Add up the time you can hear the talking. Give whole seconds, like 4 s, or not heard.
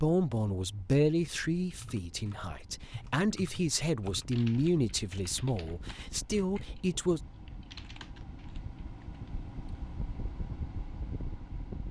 7 s.